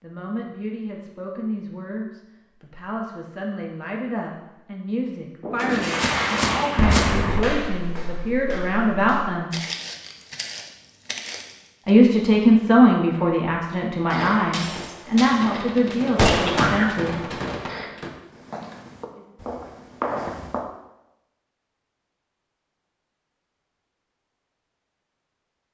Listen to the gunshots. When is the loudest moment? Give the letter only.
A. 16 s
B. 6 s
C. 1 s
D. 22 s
A.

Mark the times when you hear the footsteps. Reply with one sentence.
The footsteps can be heard from 6.0 to 11.9 s and from 18.3 to 20.6 s.